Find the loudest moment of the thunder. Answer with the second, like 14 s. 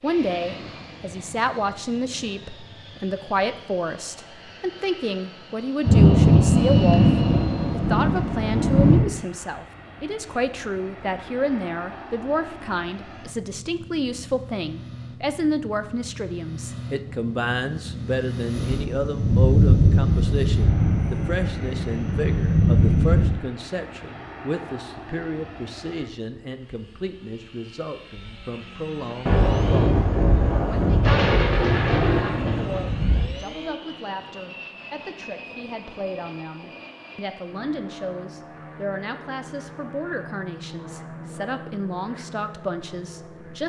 6 s.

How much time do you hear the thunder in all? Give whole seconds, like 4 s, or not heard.
12 s.